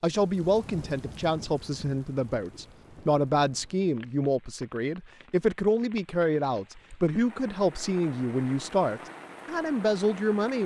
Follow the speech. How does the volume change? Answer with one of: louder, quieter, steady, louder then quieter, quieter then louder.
steady.